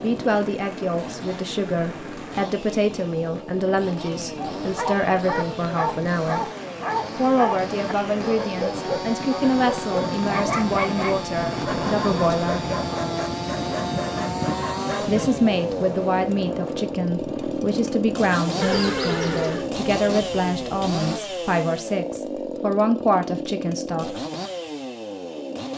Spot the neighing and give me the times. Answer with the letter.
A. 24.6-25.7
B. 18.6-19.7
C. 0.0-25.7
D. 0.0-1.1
B.